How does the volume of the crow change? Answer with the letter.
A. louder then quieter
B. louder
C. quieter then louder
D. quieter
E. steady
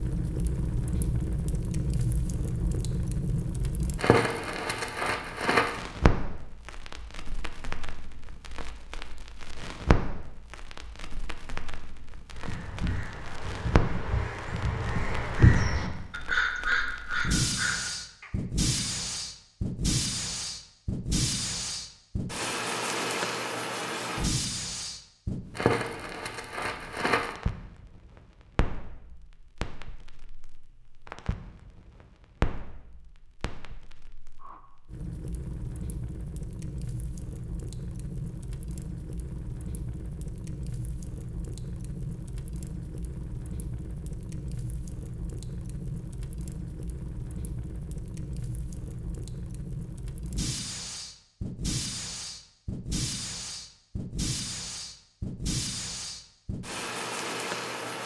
A.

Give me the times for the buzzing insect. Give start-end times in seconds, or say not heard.
not heard.